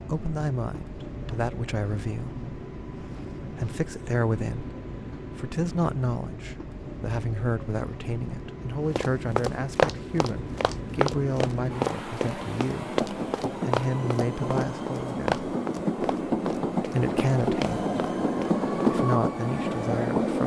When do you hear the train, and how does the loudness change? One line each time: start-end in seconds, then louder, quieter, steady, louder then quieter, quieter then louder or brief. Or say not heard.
0.0-20.4 louder.